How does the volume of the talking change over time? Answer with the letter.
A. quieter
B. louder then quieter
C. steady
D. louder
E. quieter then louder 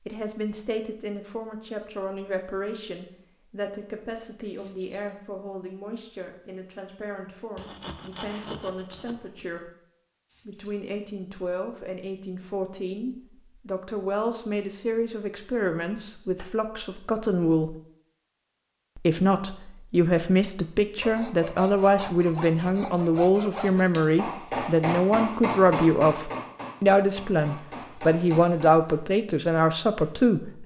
D.